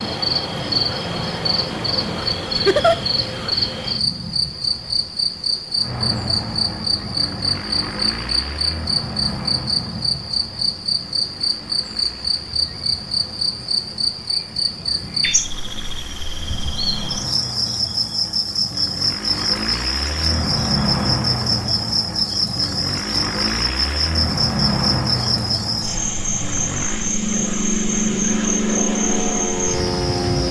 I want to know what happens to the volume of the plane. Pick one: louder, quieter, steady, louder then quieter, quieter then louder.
quieter then louder.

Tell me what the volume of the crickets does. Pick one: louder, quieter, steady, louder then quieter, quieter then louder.
steady.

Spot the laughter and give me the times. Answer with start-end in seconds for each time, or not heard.
2.5-3.0.